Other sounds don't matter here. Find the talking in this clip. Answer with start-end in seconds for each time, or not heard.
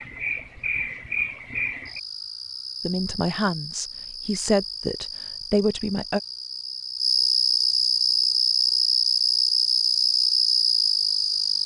2.8-6.2.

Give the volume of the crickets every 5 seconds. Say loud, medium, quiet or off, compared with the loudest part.
medium, loud, loud.